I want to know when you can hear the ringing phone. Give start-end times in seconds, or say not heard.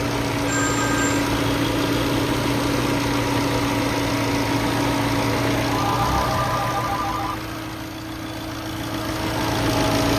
0.5-1.2, 5.7-7.3.